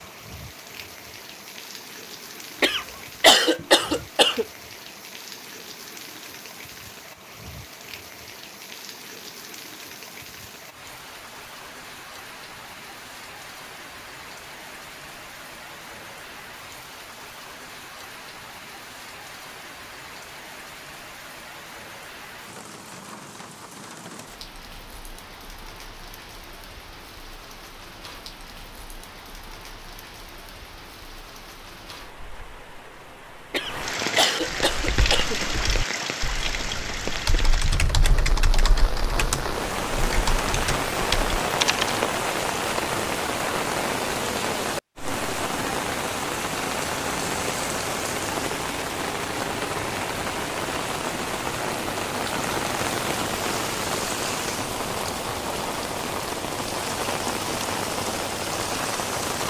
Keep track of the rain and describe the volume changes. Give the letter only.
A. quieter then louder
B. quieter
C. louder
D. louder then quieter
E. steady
C.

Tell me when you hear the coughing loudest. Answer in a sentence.
The loudest moment of the coughing is at 3 seconds.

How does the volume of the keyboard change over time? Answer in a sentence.
The volume of the keyboard goes up.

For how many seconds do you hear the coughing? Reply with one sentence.
The coughing can be heard for 4 seconds in total.